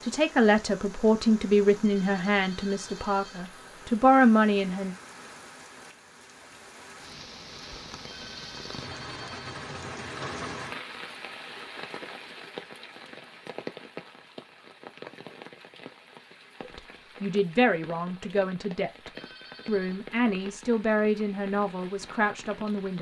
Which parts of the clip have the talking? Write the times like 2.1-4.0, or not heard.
0.0-5.0, 16.6-22.9.